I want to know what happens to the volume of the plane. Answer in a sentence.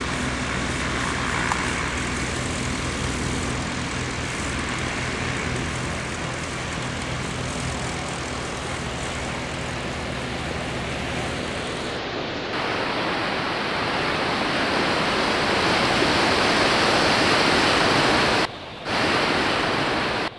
The loudness of the plane goes down.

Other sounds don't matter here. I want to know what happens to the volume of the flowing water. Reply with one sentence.
The volume of the flowing water goes up.